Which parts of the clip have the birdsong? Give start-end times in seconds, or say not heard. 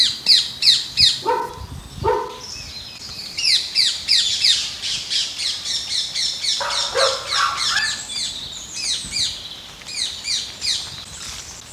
0.0-11.6.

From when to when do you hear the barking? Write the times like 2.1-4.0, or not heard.
1.2-2.5, 6.6-8.0.